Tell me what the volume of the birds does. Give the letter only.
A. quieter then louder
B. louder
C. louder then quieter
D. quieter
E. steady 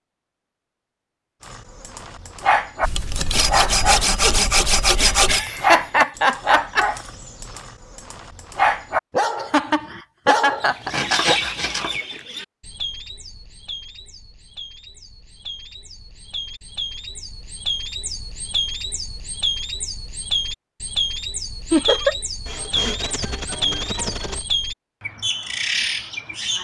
A.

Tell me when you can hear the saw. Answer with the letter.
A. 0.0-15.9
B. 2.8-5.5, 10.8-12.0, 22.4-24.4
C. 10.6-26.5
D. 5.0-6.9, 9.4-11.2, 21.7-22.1
B.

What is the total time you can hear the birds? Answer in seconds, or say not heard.
16 s.